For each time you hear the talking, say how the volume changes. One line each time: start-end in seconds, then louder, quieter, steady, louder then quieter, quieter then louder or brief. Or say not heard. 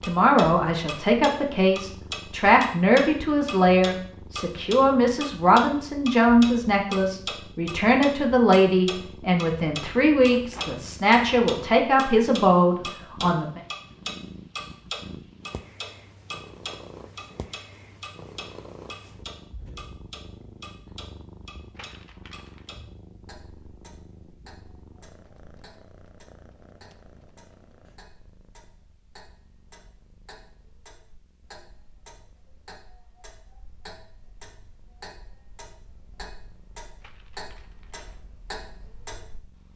0.0-13.6 steady.